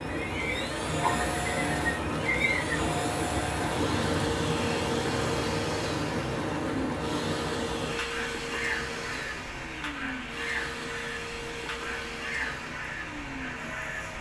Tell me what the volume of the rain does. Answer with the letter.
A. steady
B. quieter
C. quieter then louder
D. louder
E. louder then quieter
B.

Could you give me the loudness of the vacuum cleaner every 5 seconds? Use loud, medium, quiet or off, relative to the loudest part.
loud, loud, medium.